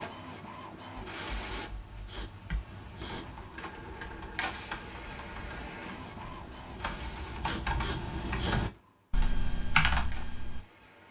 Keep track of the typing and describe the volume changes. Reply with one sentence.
The volume of the typing goes up.